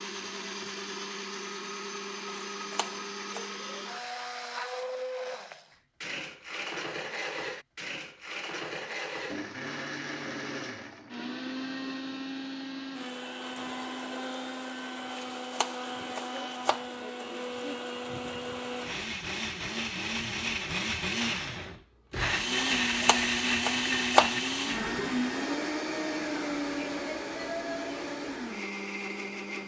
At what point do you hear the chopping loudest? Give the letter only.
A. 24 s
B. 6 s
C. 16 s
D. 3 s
A.